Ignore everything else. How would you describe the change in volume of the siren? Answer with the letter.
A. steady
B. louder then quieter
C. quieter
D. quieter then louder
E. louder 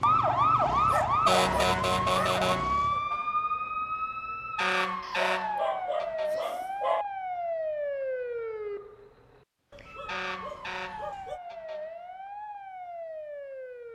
C.